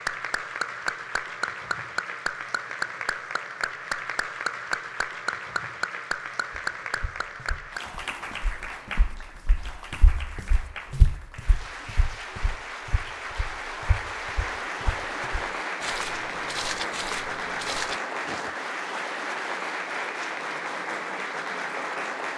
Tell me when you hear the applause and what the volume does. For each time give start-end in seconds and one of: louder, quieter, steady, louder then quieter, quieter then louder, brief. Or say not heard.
0.0-22.3 quieter then louder.